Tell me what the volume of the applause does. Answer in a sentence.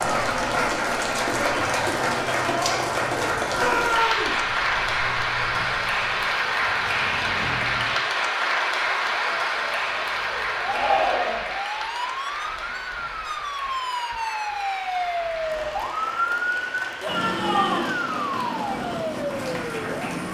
The loudness of the applause goes down.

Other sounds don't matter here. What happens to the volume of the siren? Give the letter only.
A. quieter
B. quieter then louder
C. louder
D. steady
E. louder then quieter
C.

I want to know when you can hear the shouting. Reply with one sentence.
You can hear the shouting from 3.5 to 4.3 s, from 10.6 to 11.5 s and from 17.0 to 17.9 s.